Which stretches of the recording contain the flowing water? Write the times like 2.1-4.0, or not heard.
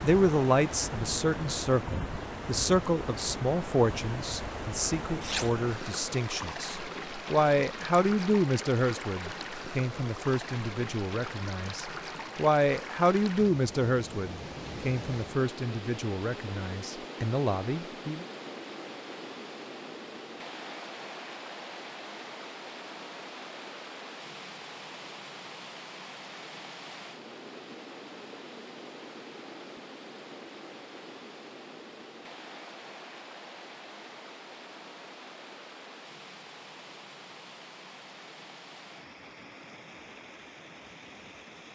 0.0-41.7.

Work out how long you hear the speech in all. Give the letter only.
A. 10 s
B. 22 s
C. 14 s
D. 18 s
D.